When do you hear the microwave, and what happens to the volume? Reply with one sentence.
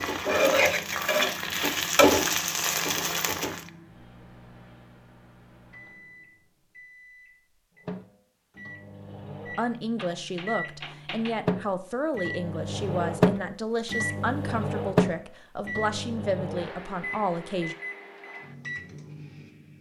The microwave can be heard from 0.0 to 19.7 s, getting louder then quieter.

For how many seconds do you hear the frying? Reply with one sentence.
You can hear the frying for 4 seconds altogether.